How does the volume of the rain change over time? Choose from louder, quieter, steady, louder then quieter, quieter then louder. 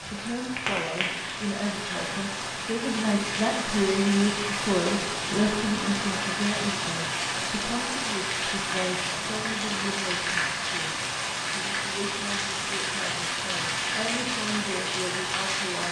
steady.